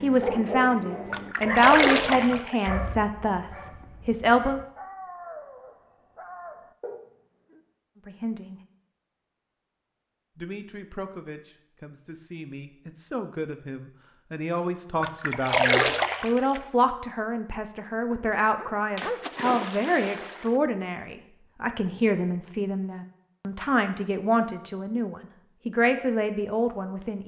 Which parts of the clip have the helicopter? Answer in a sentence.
The helicopter can't be heard in this clip.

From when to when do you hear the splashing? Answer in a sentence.
The splashing can be heard from 1.1 to 2.7 s, from 14.9 to 16.6 s and from 18.9 to 20.5 s.